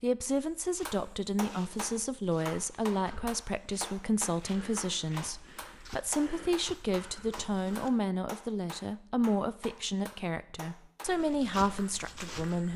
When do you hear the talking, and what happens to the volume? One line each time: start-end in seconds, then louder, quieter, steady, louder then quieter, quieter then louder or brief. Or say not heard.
0.0-12.7 steady.